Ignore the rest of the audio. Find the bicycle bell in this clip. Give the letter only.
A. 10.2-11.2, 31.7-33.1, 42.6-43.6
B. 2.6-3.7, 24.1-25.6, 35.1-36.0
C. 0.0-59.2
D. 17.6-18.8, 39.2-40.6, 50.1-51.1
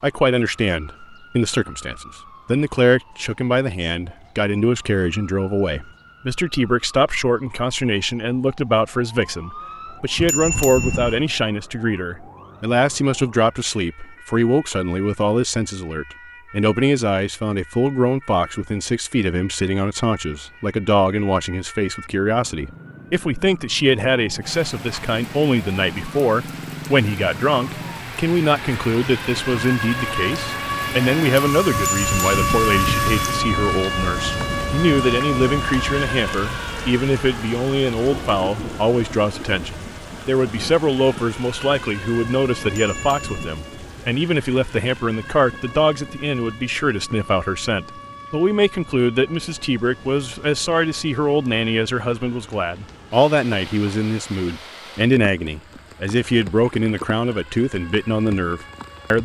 A.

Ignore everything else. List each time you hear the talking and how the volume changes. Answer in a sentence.
The talking can be heard from 0.0 to 59.2 s, at a steady volume.